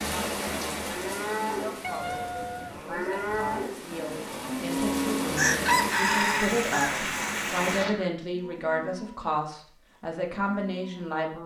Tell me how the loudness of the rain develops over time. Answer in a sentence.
The volume of the rain goes down, then up.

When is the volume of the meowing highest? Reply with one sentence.
The loudest moment of the meowing is at 2 seconds.